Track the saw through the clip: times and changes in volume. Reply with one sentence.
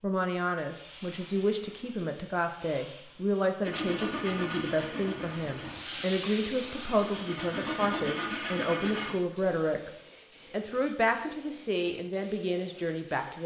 The saw can be heard from 3.6 to 9.2 s, getting quieter then louder.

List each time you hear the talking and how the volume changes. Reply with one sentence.
You can hear the talking from 0.0 to 9.9 s, at a steady volume; and briefly from 10.5 to 13.4 s.